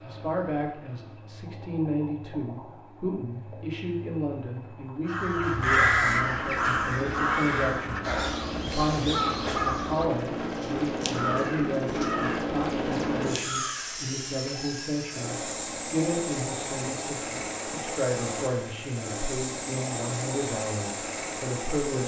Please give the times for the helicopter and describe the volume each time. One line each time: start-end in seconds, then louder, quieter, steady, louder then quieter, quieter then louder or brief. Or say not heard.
0.0-22.0 louder.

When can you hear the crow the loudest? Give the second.
6 s.